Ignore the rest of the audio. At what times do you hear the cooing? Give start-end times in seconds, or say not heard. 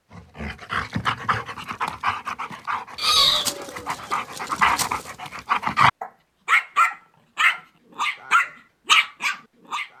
3.0-5.1.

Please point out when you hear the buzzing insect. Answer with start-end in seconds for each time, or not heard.
not heard.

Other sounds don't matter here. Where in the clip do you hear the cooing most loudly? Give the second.
3 s.